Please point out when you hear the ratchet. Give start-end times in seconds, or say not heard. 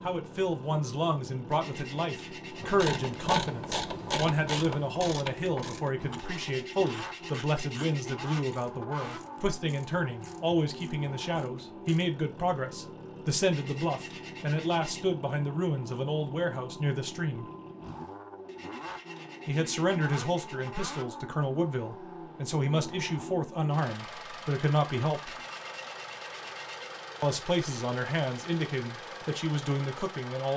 2.5-12.1.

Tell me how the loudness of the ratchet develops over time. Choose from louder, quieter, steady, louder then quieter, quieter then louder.
quieter.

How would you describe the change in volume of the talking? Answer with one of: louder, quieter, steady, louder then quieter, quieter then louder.
steady.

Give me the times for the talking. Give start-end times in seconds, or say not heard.
0.0-17.4, 19.4-25.4, 27.2-30.5.